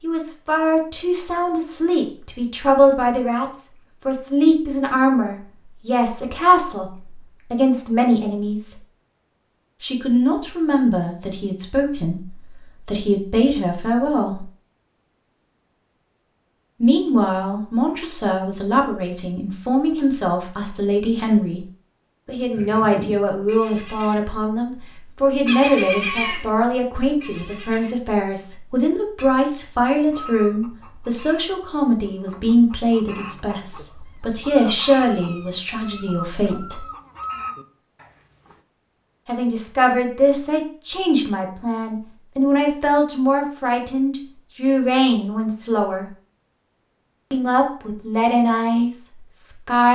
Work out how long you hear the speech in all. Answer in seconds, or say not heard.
42 s.